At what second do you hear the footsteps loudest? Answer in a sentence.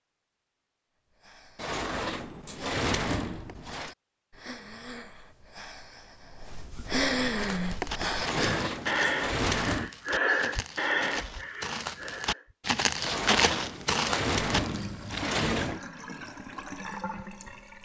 The volume of the footsteps peaks at 13 seconds.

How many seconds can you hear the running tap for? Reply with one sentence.
The running tap can be heard for 3 seconds in total.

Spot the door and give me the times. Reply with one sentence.
You can hear the door from 1.6 to 3.9 s, from 8.2 to 9.9 s and from 13.0 to 15.8 s.